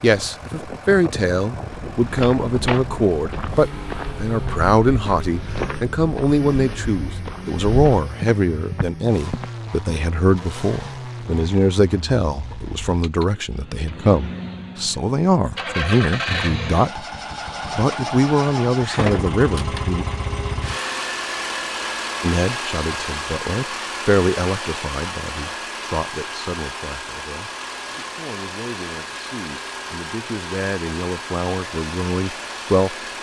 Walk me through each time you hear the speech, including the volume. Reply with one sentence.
The speech can be heard from 0.0 to 17.1 s, at a steady volume; briefly from 17.8 to 20.1 s; and from 22.2 to 33.1 s, getting quieter then louder.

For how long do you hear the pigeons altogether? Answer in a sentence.
The pigeons can't be heard in this clip.